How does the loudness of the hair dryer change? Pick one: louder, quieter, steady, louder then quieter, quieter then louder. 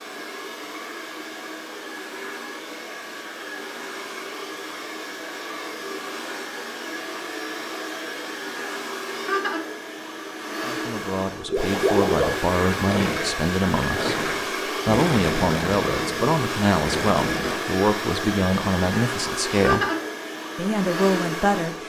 louder.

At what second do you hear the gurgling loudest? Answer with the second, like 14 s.
12 s.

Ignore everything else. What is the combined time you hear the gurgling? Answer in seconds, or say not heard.
6 s.